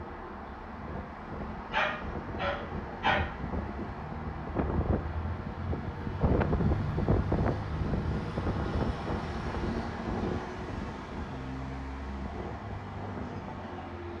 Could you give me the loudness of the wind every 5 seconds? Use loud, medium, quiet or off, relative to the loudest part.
medium, loud, medium.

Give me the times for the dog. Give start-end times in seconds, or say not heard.
1.7-3.2.